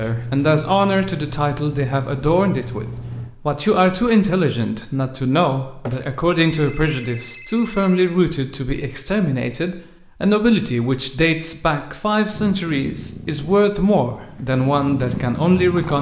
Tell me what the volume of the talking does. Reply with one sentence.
The volume of the talking stays about the same.